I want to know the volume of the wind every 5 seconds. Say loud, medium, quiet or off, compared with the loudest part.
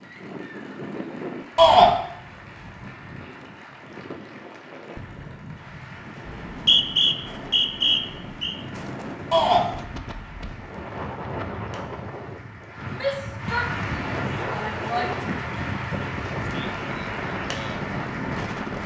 medium, medium, loud, loud.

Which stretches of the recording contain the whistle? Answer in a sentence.
You can hear the whistle from 6.5 to 8.6 s.